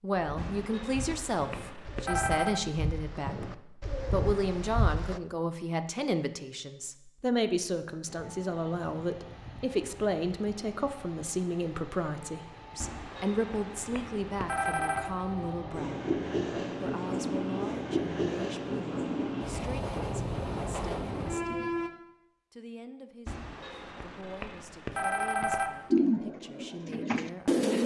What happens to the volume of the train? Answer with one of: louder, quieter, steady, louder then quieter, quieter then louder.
louder.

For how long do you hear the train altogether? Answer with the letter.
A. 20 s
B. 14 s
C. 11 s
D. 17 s
B.